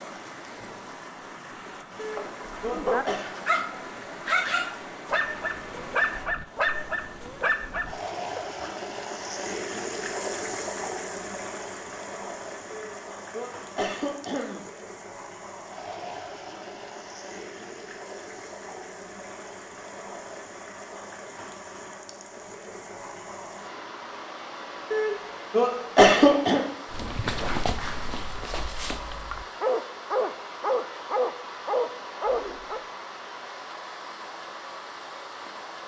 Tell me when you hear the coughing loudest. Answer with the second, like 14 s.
26 s.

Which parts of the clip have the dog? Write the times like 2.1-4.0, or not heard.
2.9-8.7, 26.9-32.8.